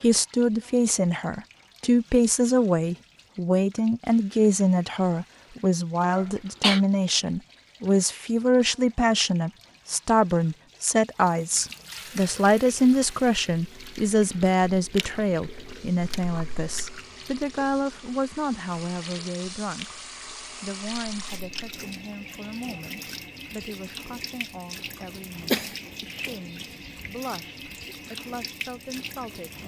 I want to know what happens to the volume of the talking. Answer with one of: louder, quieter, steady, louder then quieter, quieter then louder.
quieter.